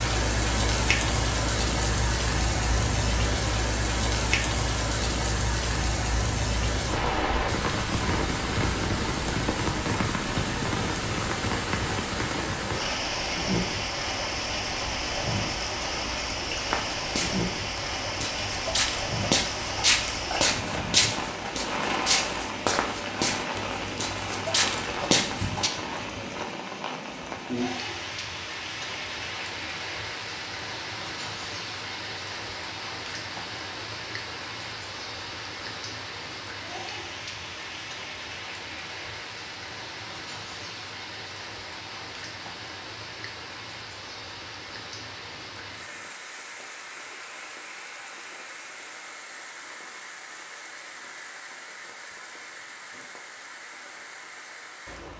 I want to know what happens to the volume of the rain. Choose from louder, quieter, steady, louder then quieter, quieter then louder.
quieter.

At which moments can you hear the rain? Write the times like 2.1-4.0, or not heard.
0.0-55.1.